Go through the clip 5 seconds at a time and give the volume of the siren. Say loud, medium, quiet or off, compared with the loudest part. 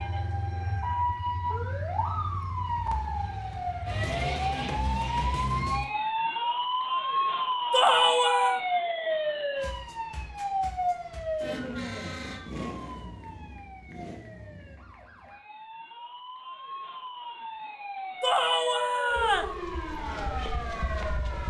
loud, loud, medium, medium, medium.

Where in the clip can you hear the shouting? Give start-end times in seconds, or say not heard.
7.7-8.6, 18.2-19.6.